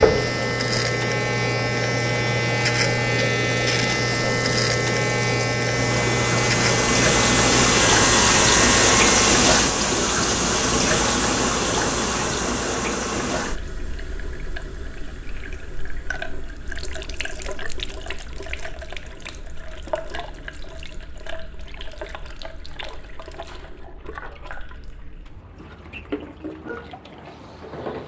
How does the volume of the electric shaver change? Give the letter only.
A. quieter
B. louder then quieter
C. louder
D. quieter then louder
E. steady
E.